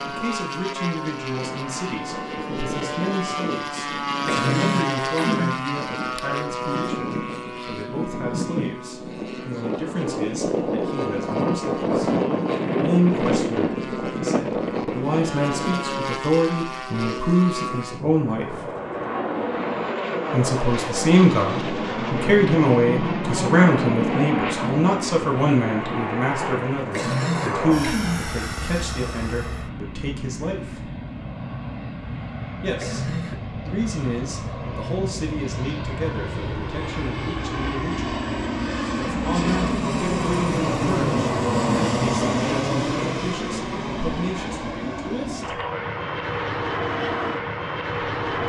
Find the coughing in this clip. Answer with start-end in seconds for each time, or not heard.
4.2-5.6, 26.9-28.4, 32.8-33.4.